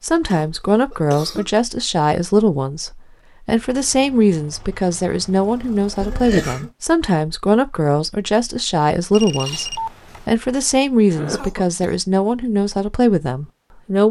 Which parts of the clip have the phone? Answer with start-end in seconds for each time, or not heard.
9.1-10.3.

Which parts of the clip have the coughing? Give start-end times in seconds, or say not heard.
0.2-1.5, 6.0-6.7, 11.1-11.9.